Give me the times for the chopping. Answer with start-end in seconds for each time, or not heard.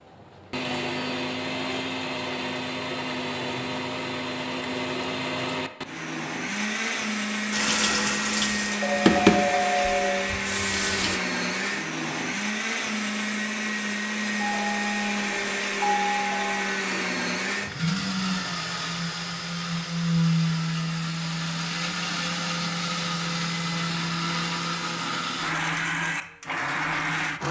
not heard.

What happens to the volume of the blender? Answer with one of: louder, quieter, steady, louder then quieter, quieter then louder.
steady.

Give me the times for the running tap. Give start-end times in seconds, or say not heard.
7.5-11.2.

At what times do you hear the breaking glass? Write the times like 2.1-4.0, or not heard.
not heard.